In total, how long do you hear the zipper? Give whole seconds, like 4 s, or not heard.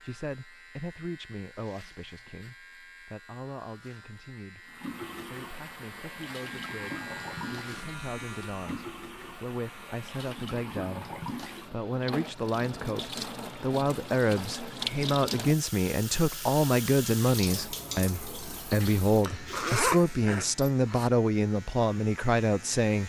3 s.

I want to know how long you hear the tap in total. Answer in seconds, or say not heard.
15 s.